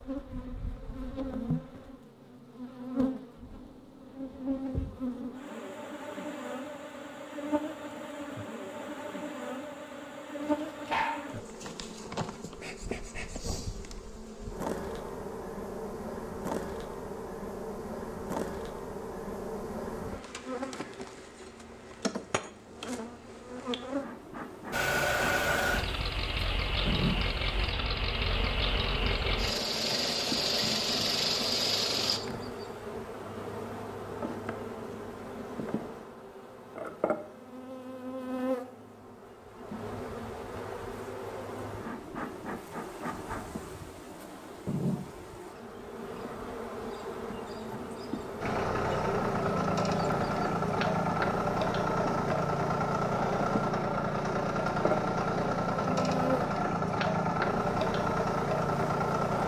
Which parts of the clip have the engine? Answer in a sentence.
You can hear the engine from 24.7 to 32.2 s and from 48.4 to 59.4 s.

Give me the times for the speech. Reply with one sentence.
The speech can't be heard in this clip.